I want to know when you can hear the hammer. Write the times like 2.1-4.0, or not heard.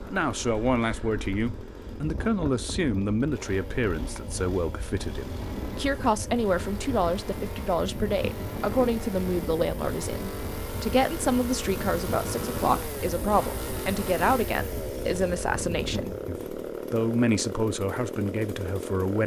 not heard.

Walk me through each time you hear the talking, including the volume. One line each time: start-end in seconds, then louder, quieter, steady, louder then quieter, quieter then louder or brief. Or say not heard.
0.1-19.2 steady.